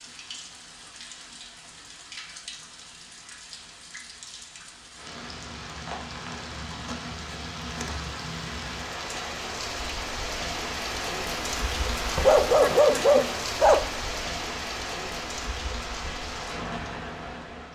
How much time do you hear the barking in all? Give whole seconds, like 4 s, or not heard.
2 s.